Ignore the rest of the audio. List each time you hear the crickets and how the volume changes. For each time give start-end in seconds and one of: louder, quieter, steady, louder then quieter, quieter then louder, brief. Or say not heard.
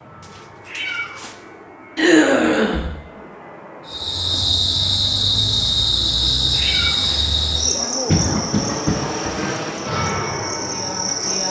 3.9-11.4 quieter.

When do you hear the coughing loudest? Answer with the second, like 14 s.
2 s.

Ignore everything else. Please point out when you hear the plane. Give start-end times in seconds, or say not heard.
0.0-11.4.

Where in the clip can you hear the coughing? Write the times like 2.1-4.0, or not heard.
1.9-2.9, 8.1-9.6.